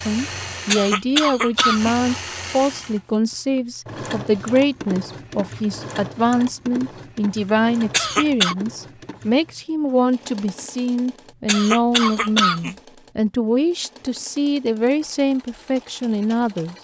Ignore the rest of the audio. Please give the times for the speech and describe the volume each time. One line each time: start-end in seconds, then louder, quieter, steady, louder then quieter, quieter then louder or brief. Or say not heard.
0.1-16.7 steady.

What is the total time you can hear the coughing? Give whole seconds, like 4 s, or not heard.
3 s.